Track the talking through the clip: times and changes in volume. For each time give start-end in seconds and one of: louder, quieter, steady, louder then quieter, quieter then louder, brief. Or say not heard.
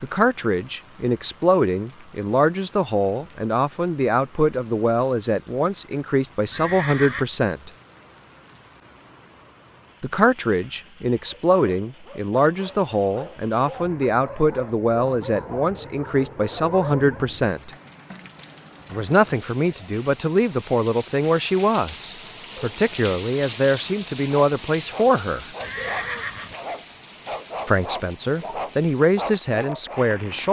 0.0-7.7 steady
10.0-17.7 steady
18.9-25.4 steady
27.6-30.4 brief.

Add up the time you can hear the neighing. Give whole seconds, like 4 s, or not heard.
2 s.